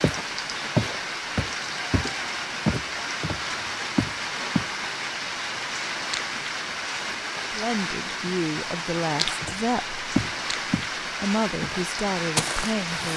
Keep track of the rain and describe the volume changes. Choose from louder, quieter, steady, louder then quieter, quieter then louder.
steady.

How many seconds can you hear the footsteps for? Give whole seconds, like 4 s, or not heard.
8 s.